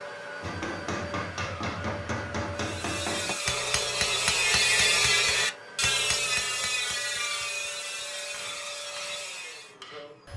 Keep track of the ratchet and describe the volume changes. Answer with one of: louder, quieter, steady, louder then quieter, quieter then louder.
louder then quieter.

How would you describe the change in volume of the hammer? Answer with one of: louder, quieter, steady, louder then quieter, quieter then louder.
quieter.